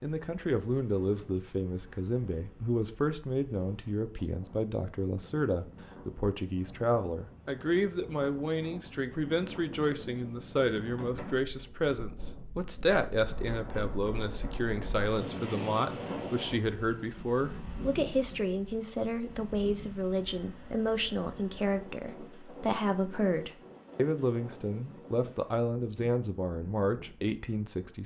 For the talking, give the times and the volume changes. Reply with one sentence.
You can hear the talking from 0.0 to 28.0 s, at a steady volume.